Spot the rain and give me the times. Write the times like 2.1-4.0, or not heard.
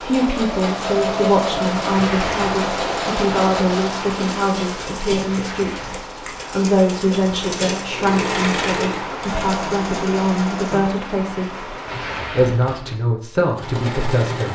0.0-12.3.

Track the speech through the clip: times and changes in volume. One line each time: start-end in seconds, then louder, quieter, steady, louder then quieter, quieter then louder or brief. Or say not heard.
0.0-14.4 steady.